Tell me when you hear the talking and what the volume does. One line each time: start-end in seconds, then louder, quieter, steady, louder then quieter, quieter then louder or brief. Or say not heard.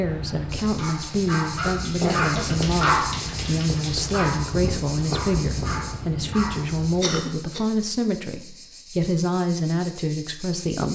0.0-10.9 steady.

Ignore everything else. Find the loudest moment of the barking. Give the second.
3 s.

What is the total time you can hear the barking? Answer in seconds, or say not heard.
6 s.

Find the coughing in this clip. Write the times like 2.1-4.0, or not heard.
1.6-2.5, 7.0-7.6.